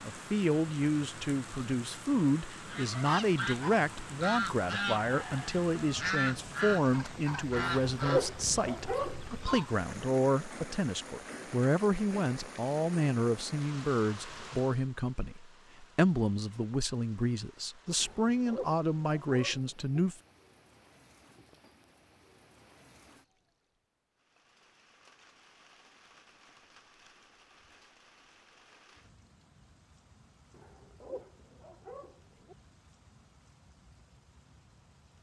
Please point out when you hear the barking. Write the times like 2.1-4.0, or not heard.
7.5-9.6, 18.0-20.0, 30.5-32.5.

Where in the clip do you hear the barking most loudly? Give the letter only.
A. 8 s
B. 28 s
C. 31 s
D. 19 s
A.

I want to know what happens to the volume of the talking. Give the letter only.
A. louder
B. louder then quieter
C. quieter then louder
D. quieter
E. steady
E.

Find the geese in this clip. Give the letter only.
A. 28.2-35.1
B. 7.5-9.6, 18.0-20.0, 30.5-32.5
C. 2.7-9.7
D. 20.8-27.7
C.